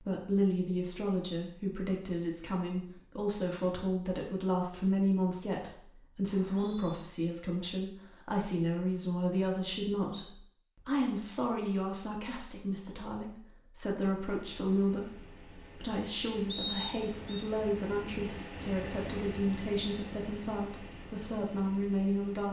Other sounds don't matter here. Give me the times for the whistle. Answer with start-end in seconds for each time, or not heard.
6.2-7.0, 16.5-17.4.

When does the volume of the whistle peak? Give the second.
17 s.